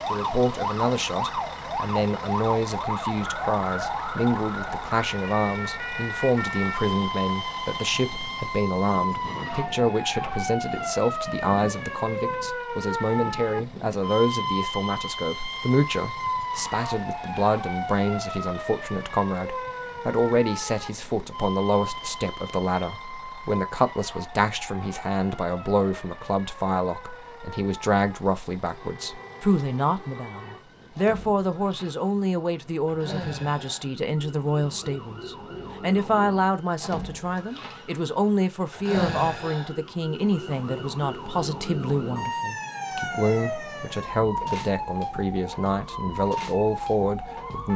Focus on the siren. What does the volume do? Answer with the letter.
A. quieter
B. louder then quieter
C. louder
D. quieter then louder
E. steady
D.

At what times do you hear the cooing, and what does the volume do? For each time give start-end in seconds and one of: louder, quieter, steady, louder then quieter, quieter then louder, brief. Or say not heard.
not heard.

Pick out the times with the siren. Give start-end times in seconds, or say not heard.
0.0-47.7.